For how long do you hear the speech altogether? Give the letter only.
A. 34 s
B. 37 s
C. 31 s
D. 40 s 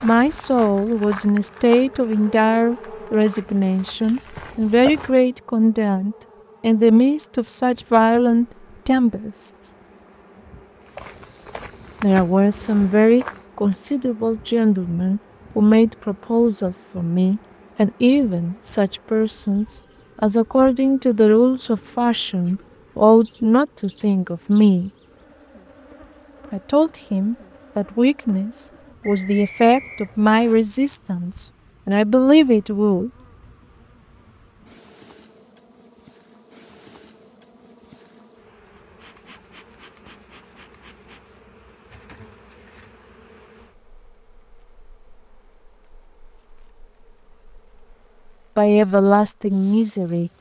C.